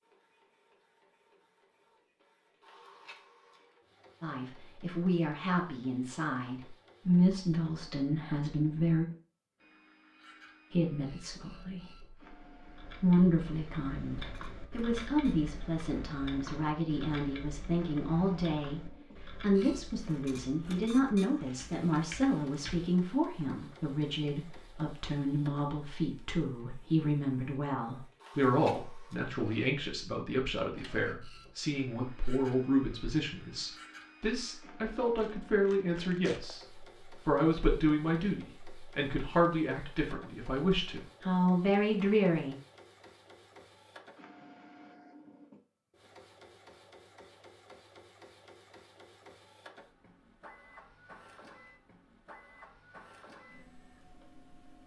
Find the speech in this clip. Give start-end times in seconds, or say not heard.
4.2-9.1, 10.7-12.2, 13.0-42.5.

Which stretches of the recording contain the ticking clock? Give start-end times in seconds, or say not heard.
not heard.